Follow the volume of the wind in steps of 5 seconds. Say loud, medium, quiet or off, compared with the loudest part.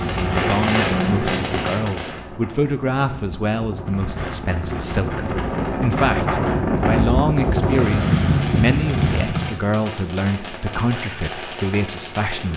medium, loud, off.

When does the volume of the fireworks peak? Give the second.
1 s.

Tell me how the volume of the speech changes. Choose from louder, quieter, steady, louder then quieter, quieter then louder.
steady.